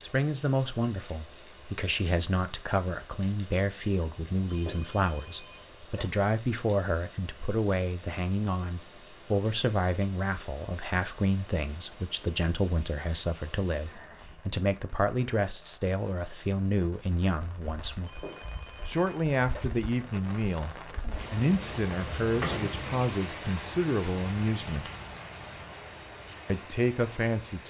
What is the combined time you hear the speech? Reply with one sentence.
The speech can be heard for 25 seconds in total.